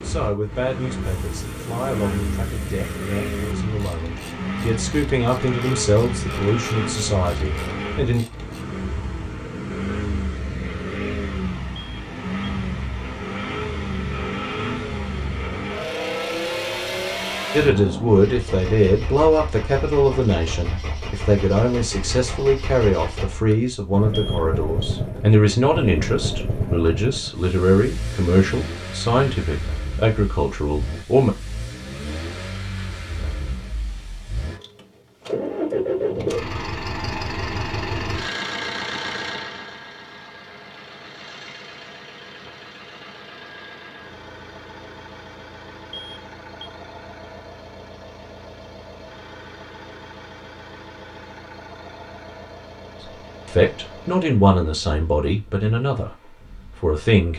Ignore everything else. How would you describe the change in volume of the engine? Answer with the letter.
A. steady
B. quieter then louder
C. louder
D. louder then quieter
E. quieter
E.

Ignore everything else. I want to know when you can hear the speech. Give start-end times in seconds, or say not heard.
0.0-8.2, 17.5-31.4, 53.0-57.3.